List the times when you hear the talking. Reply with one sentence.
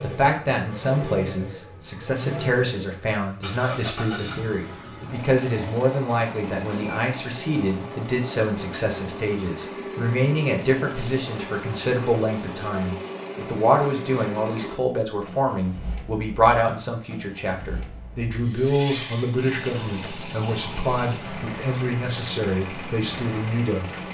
You can hear the talking from 0.0 to 24.0 s.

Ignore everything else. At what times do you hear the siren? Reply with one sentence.
The siren can't be heard in this clip.